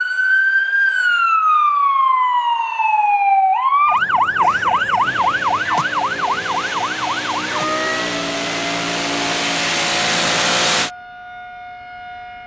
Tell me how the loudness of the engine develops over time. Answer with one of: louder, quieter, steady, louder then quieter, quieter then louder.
louder.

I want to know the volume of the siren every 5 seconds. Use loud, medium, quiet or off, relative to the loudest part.
loud, medium, quiet.